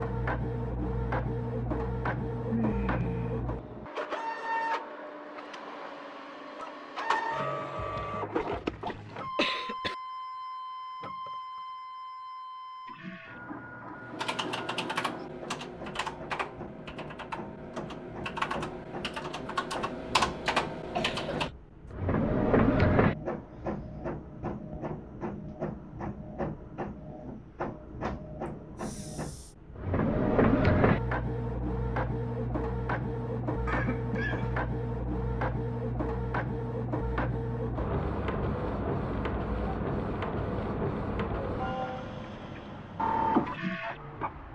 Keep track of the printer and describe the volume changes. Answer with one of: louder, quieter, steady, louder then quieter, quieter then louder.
quieter then louder.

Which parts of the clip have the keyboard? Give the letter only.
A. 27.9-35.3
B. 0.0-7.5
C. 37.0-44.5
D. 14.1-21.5
D.